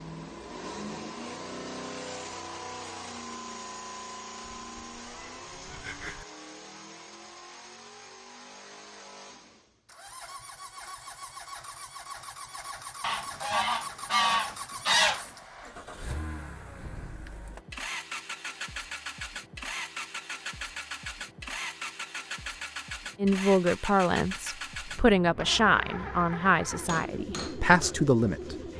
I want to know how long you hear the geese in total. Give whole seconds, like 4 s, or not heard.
2 s.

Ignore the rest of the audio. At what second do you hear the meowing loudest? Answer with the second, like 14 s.
6 s.